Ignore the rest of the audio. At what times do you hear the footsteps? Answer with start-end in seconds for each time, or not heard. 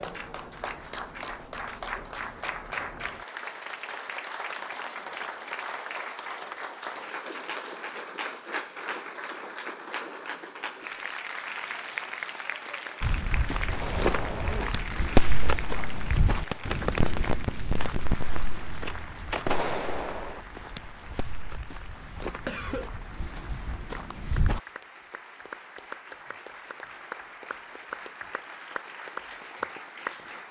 13.0-24.6.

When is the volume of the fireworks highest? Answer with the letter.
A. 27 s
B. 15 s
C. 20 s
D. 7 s
B.